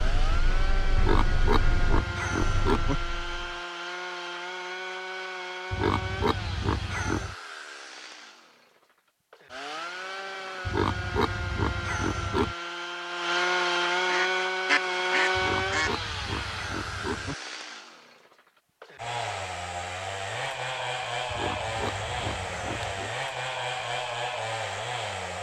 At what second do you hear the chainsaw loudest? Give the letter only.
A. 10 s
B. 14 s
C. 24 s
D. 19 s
B.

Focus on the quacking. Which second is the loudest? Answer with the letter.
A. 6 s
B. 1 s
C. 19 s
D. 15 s
D.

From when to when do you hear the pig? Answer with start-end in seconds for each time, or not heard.
0.9-3.0, 5.7-7.3, 10.7-12.6, 15.3-17.4, 21.2-23.1.